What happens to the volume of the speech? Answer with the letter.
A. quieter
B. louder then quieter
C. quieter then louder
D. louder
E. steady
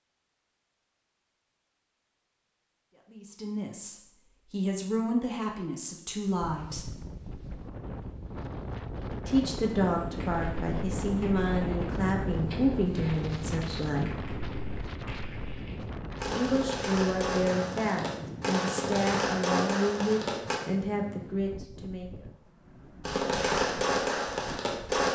E.